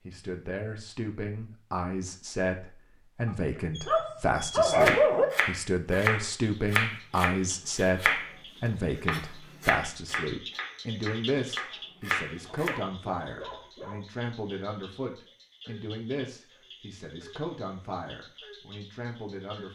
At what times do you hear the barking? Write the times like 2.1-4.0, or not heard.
3.2-5.2, 12.5-14.1.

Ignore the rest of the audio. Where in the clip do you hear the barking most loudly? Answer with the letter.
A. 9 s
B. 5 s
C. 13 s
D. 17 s
B.